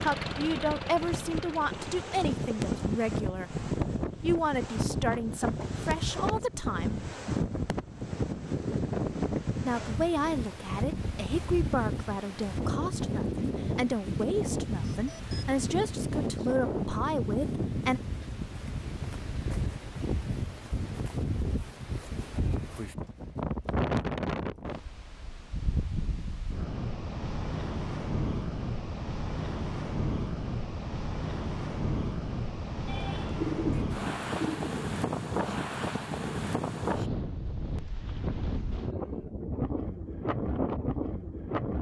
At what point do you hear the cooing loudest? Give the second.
34 s.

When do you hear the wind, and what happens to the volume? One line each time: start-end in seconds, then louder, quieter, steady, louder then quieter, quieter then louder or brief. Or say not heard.
0.0-41.7 steady.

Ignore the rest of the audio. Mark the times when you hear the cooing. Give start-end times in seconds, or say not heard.
32.9-34.8.